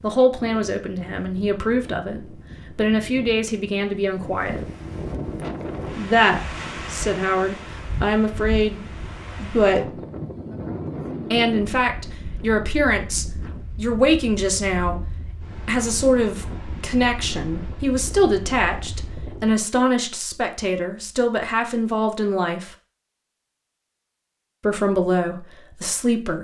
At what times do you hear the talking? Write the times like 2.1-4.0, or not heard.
0.0-4.7, 5.8-10.0, 11.3-22.7, 24.6-26.3.